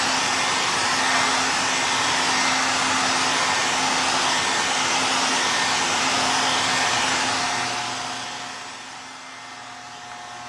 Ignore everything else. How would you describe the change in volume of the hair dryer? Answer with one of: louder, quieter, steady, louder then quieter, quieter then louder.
quieter.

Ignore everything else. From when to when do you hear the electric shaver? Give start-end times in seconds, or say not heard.
6.1-10.4.